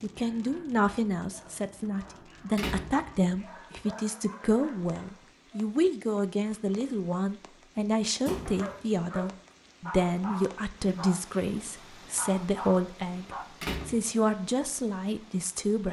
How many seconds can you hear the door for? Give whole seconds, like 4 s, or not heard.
2 s.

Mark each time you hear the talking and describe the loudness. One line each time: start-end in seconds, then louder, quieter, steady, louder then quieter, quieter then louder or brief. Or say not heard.
0.0-15.8 steady.